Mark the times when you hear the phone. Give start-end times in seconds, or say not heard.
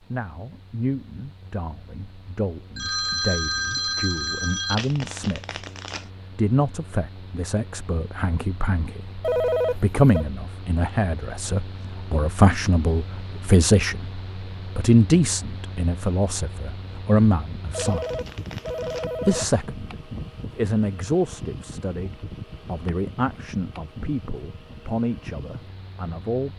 2.8-4.8, 9.2-10.2, 17.7-19.4.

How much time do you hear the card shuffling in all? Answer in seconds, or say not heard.
3 s.